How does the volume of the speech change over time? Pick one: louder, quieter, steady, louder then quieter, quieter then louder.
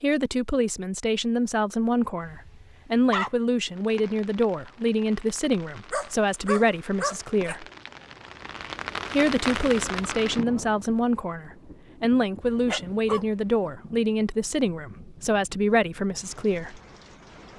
steady.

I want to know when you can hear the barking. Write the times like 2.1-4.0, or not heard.
2.2-3.3, 5.9-7.5, 12.4-13.7.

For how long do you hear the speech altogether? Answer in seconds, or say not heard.
15 s.